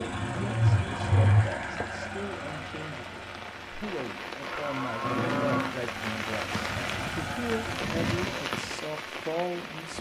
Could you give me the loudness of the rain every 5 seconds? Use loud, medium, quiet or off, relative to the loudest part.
medium, loud.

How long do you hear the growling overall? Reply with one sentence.
The growling can be heard for 2 seconds in total.